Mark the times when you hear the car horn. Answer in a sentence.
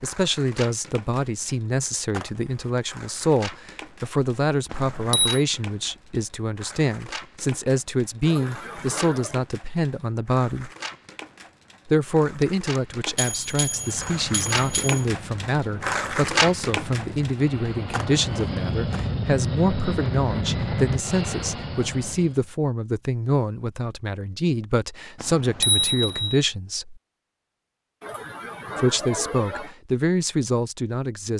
You can't hear the car horn here.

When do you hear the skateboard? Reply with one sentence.
The skateboard can be heard from 0.0 to 19.1 s.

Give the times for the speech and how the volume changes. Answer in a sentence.
The speech can be heard from 0.0 to 10.7 s, at a steady volume; from 11.8 to 27.0 s, at a steady volume; and briefly from 28.8 to 31.3 s.